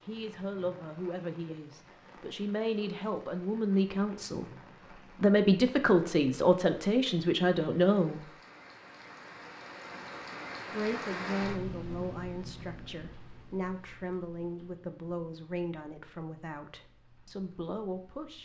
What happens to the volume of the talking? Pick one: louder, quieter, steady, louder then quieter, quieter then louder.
louder then quieter.